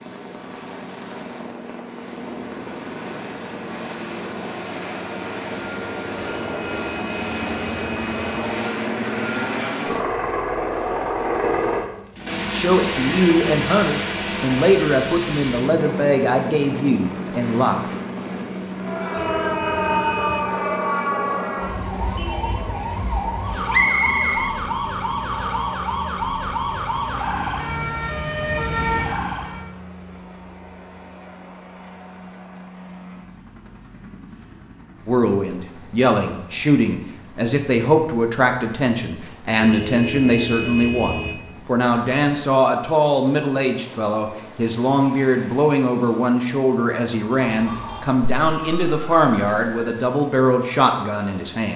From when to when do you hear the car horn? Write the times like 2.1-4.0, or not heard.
6.2-8.6, 19.1-20.4, 39.6-41.4.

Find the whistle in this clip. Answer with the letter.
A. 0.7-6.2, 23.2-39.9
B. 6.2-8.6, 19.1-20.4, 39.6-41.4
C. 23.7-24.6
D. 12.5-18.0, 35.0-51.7
C.